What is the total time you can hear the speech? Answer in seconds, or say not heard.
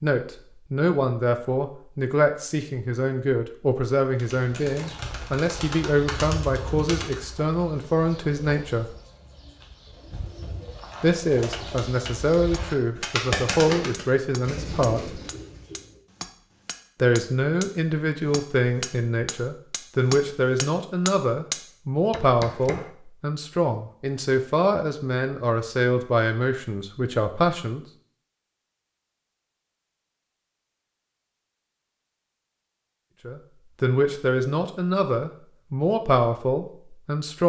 28 s.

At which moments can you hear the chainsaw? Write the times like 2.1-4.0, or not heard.
not heard.